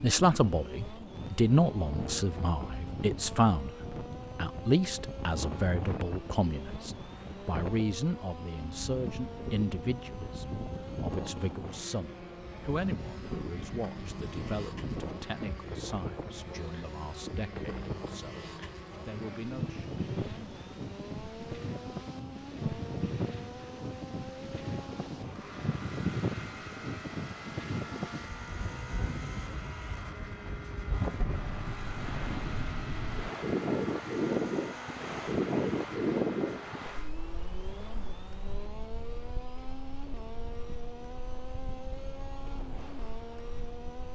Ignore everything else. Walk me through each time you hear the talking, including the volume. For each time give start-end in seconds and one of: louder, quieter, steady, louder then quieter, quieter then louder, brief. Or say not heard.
0.0-19.9 quieter.